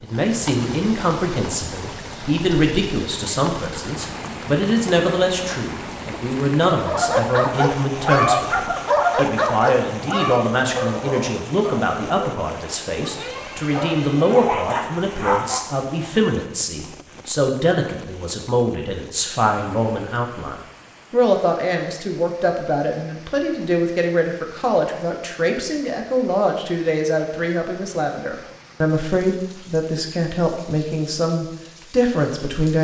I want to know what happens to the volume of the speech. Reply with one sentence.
The volume of the speech stays about the same.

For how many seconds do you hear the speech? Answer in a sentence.
You can hear the speech for 33 seconds altogether.